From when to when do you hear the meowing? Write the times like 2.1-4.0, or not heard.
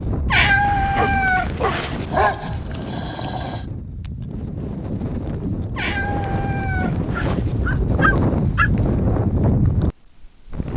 0.3-2.3, 5.8-7.8.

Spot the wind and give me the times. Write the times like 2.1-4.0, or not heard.
0.0-10.7.